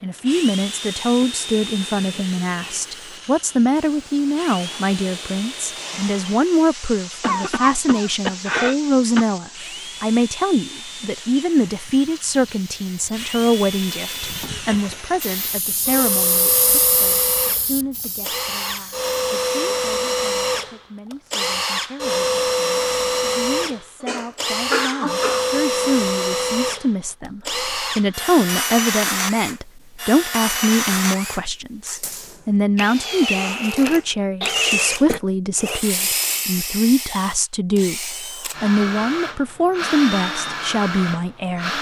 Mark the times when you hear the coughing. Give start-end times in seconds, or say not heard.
7.2-9.2, 24.0-25.6, 34.4-35.2.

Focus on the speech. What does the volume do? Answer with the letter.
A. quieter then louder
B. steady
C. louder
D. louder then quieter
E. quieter
A.